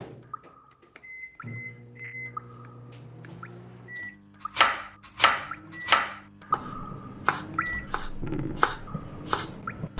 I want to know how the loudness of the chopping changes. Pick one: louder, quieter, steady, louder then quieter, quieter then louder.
quieter then louder.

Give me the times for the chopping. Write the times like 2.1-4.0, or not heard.
4.5-9.9.